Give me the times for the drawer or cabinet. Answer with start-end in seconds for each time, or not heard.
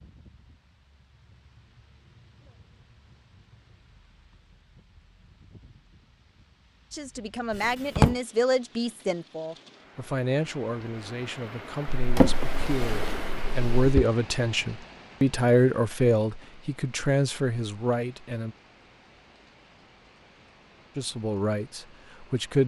7.5-8.2, 11.9-14.1.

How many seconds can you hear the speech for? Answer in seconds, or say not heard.
13 s.